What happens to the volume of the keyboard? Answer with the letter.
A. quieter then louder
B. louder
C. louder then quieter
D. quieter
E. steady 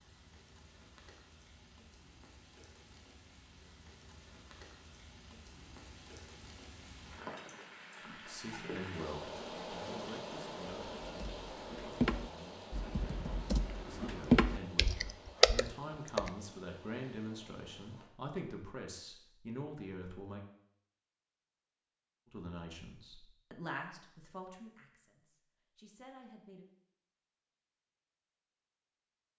A.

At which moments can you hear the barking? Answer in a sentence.
The barking can't be heard in this clip.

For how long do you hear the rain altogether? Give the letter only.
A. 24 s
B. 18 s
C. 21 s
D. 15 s
B.